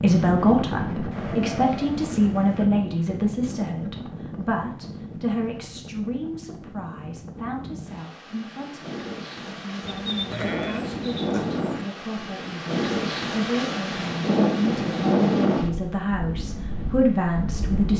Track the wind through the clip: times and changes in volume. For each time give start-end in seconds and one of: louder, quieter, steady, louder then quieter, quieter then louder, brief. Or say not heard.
0.0-17.9 quieter then louder.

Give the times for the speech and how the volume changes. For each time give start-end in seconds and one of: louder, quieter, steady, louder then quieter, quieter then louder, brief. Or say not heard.
0.0-17.9 quieter then louder.